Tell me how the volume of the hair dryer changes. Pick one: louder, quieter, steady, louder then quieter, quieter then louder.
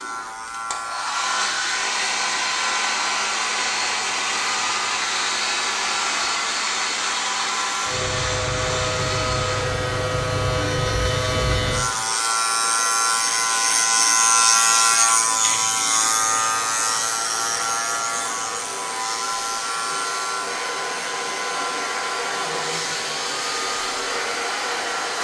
quieter then louder.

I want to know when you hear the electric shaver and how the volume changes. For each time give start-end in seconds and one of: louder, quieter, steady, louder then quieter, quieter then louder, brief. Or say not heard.
0.0-25.1 louder then quieter.